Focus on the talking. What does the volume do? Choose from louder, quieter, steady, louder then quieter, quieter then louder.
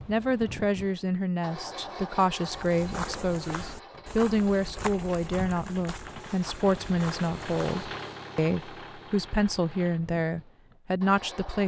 steady.